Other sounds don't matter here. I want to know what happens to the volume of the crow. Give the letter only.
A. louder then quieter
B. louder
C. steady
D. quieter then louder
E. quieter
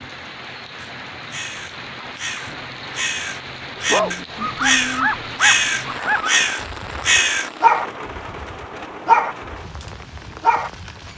B.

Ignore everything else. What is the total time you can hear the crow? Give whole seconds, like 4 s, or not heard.
7 s.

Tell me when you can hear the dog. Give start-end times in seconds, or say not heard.
3.9-10.7.